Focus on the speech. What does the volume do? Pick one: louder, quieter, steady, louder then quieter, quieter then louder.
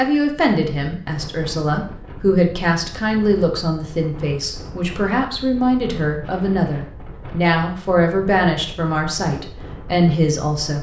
steady.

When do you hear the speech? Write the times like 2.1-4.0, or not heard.
0.0-10.7.